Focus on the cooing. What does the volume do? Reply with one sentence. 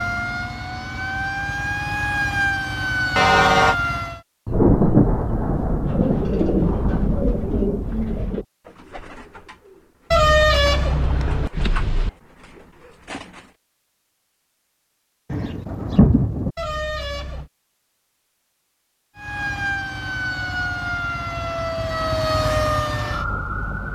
The volume of the cooing goes down, then up.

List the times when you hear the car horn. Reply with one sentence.
You can hear the car horn from 3.1 to 3.8 s, from 10.1 to 12.1 s and from 16.6 to 17.5 s.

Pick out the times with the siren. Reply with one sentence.
The siren can be heard from 0.0 to 4.2 s and from 19.1 to 23.9 s.